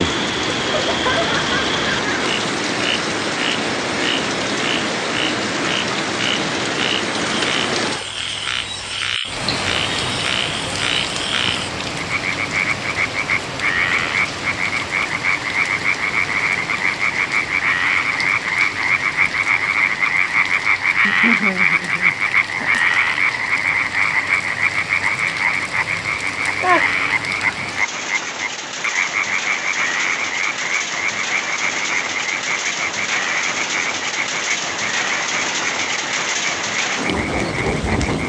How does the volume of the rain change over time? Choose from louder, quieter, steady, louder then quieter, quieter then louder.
quieter then louder.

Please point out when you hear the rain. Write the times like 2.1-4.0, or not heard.
0.0-38.2.